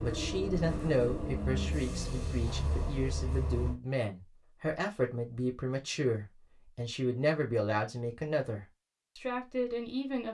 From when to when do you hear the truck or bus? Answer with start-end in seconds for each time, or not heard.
0.0-3.8.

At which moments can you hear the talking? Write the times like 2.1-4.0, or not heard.
0.0-10.2.